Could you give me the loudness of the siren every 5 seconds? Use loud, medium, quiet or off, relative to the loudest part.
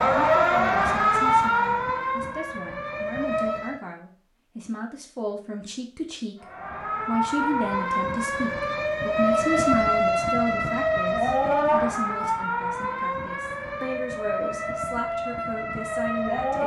loud, loud, loud, medium.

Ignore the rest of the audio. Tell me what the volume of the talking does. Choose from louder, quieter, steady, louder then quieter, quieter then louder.
louder then quieter.